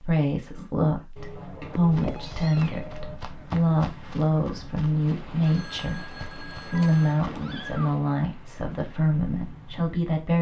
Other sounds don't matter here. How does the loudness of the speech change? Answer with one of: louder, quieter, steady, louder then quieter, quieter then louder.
steady.